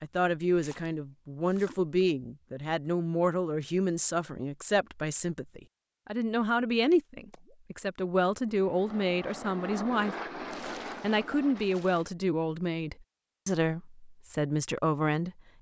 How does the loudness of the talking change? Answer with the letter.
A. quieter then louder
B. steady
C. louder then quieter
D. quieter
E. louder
B.